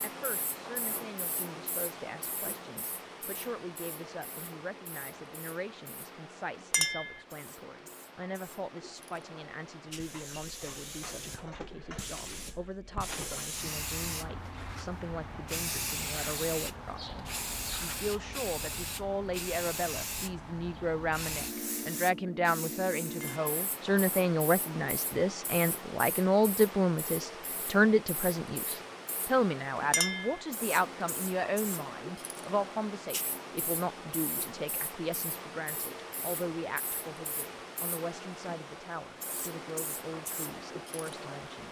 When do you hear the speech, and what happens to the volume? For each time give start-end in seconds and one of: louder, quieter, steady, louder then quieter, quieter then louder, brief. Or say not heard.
0.0-41.6 louder then quieter.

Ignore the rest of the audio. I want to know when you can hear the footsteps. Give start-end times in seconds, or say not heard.
not heard.